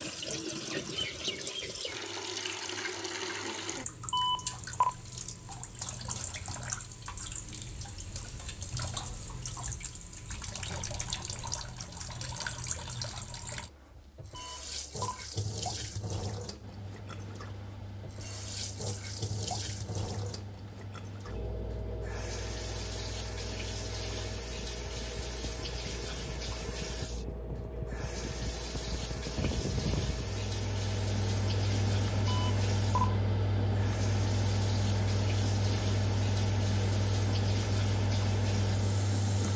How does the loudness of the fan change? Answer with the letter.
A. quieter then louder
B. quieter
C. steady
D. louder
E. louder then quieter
D.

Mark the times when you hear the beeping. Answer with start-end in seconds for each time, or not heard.
4.1-5.0, 14.3-15.2, 32.2-33.1.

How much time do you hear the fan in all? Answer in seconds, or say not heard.
23 s.